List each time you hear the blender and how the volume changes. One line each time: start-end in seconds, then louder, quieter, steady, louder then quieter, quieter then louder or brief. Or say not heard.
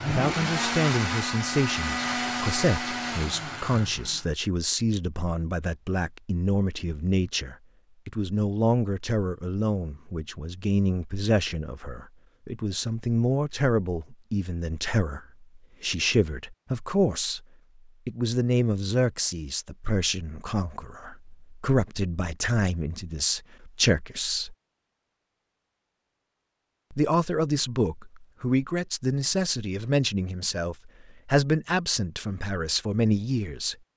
0.0-4.2 quieter.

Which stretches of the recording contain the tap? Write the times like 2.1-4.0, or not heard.
not heard.